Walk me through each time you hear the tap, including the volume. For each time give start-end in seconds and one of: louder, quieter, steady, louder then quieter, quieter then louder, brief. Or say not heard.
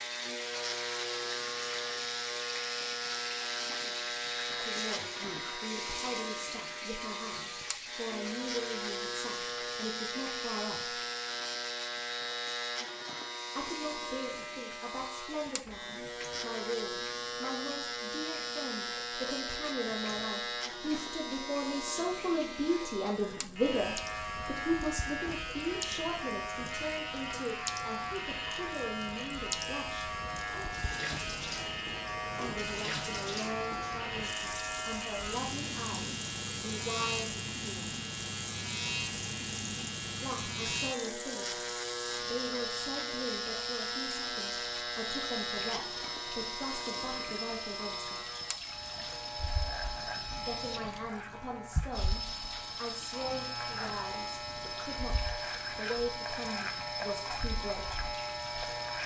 0.0-59.0 quieter then louder.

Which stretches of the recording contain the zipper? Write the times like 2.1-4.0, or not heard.
not heard.